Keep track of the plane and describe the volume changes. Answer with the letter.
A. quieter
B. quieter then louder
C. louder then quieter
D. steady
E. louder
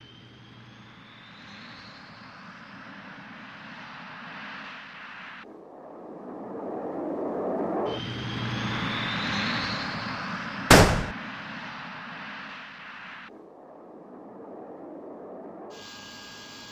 C.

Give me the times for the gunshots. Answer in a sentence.
You can hear the gunshots from 10.7 to 11.1 s.